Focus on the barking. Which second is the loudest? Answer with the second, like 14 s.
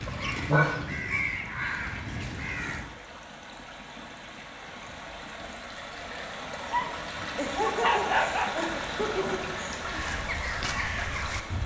8 s.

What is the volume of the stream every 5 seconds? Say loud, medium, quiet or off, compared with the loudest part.
medium, loud, loud.